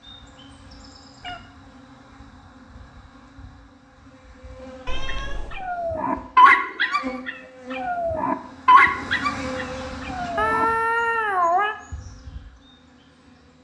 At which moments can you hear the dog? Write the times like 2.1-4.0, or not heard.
5.0-10.7.